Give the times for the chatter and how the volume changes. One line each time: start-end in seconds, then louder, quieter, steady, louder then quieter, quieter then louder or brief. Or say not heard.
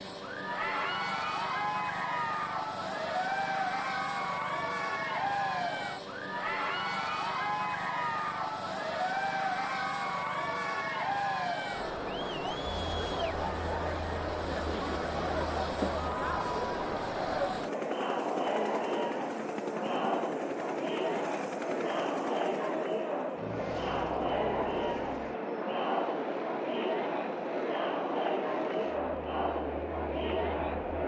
0.1-31.0 steady.